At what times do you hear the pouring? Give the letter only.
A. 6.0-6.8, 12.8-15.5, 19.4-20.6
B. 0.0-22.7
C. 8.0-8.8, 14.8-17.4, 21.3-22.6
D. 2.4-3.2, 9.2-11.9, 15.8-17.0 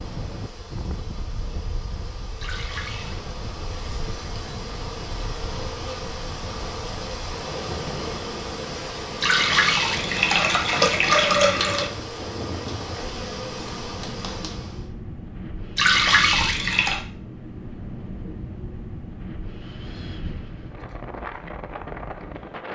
D.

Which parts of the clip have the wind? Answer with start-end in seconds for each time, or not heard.
0.0-22.7.